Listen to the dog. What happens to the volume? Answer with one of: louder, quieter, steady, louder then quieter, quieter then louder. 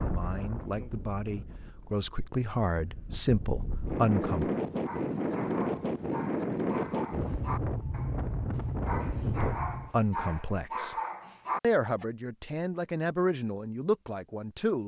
louder.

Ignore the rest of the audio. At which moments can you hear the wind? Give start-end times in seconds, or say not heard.
0.0-9.9.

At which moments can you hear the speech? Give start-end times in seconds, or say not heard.
0.1-4.5, 9.2-10.9, 11.6-14.8.